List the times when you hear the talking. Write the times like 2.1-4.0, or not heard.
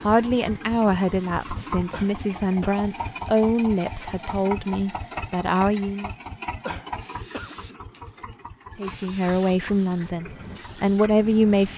0.0-6.1, 8.8-11.7.